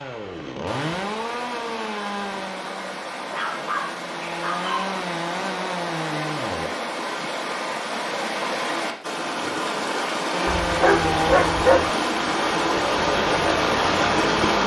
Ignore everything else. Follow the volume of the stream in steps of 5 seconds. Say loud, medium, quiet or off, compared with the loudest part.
medium, medium, loud.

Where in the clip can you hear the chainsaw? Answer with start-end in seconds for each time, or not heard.
0.0-6.7, 10.3-14.6.